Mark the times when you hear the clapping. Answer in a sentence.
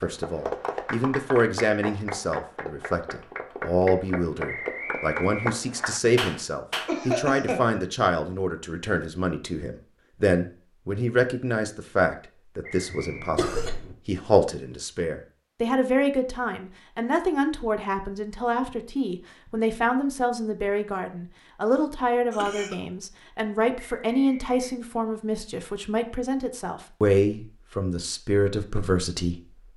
The clapping can be heard from 0.0 to 7.0 s.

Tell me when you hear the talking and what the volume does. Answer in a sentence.
You can hear the talking from 0.0 to 29.4 s, at a steady volume.